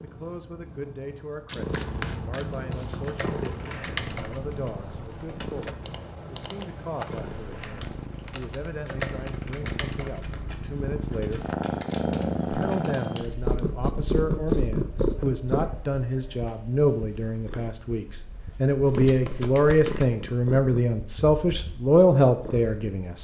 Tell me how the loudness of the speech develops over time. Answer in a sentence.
The loudness of the speech goes up.